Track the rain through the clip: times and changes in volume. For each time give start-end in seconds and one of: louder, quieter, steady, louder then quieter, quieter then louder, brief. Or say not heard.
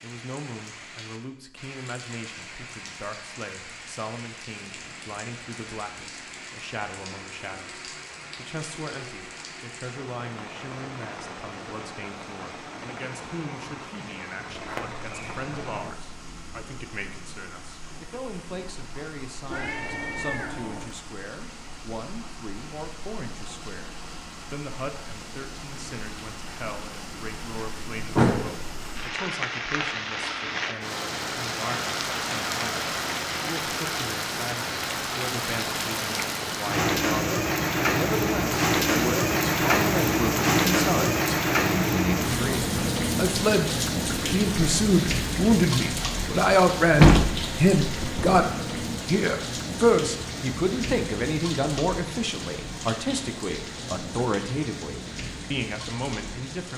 0.0-56.7 louder then quieter.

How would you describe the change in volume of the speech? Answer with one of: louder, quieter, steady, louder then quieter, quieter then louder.
louder.